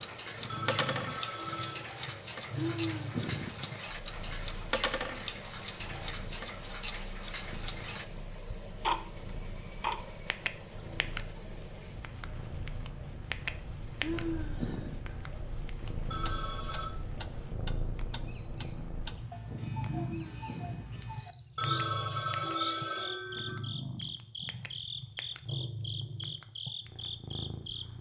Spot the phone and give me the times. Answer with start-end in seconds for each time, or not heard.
0.5-1.8, 16.1-16.9, 21.6-23.6.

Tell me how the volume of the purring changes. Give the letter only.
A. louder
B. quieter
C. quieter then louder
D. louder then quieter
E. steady
C.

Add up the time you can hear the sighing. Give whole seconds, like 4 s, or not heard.
3 s.